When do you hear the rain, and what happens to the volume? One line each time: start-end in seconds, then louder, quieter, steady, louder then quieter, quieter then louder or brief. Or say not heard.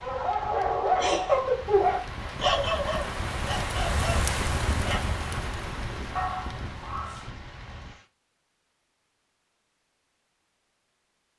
0.0-8.1 louder then quieter.